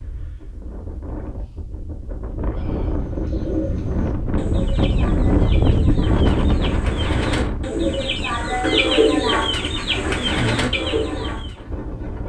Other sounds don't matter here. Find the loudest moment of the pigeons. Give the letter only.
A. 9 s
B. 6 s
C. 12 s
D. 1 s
A.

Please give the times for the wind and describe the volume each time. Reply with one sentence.
The wind can be heard from 0.0 to 12.2 s, getting louder then quieter.